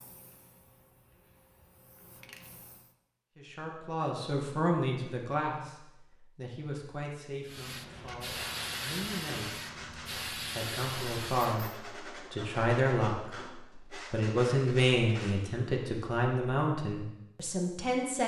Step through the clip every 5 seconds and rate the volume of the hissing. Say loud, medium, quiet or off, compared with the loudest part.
quiet, loud, loud, off.